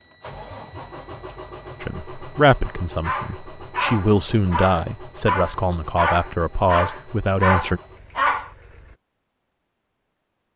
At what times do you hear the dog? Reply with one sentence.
The dog can be heard from 2.6 to 8.5 s.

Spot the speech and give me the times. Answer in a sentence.
The speech can be heard from 1.8 to 7.8 s.